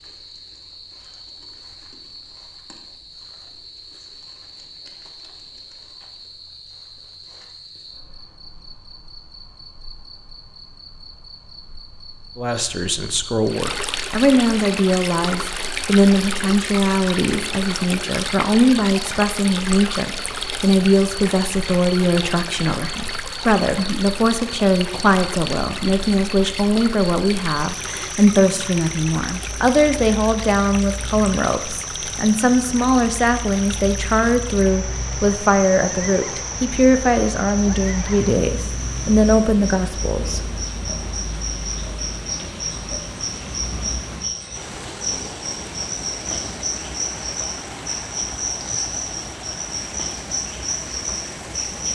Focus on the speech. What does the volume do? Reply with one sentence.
The loudness of the speech stays about the same.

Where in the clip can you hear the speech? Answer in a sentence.
You can hear the speech from 12.3 to 40.4 s.